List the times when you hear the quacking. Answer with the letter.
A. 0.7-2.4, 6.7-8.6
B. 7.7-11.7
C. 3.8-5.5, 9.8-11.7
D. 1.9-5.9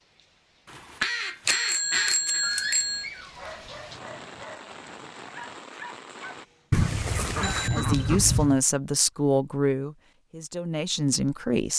A.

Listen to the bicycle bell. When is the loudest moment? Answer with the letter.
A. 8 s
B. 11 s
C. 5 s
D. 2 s
D.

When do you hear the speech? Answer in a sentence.
You can hear the speech from 7.7 to 11.7 s.